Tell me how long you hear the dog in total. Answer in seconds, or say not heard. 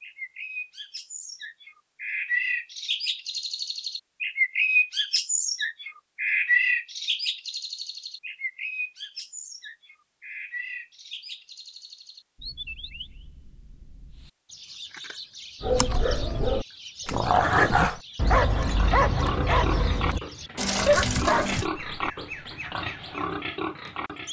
6 s.